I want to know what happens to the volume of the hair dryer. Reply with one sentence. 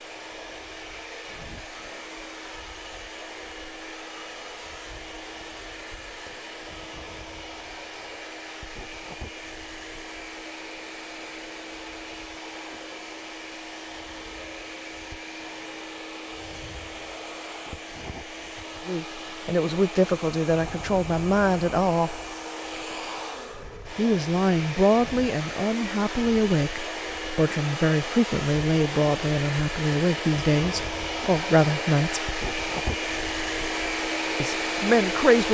The volume of the hair dryer goes up.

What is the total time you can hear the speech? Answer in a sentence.
You can hear the speech for 13 seconds altogether.